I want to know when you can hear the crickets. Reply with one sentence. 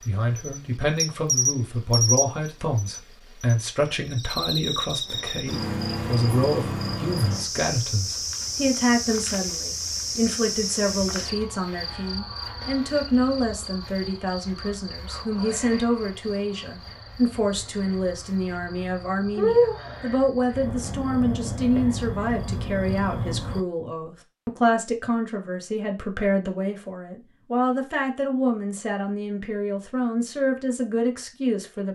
You can hear the crickets from 0.0 to 23.6 s.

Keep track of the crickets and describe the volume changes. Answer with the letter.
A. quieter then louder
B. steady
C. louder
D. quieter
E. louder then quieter
A.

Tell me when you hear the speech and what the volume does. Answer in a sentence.
You can hear the speech from 0.1 to 31.9 s, at a steady volume.